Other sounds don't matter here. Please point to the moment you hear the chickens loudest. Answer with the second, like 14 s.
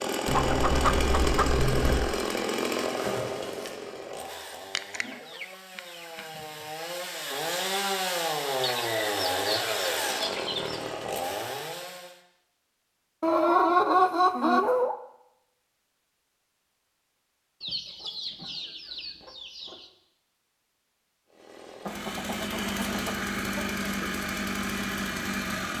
14 s.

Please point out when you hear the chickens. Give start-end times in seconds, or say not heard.
0.2-2.2, 4.8-6.2, 8.6-10.9, 13.2-14.9, 17.6-19.9, 21.9-24.1.